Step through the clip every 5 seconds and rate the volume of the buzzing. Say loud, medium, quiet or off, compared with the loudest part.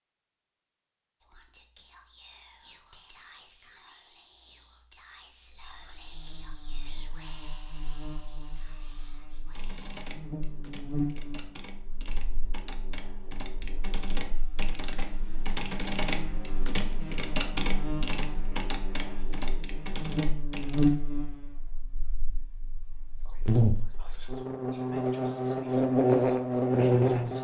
off, quiet, quiet, quiet, medium, loud.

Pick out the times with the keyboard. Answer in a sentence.
The keyboard can be heard from 9.5 to 20.9 s.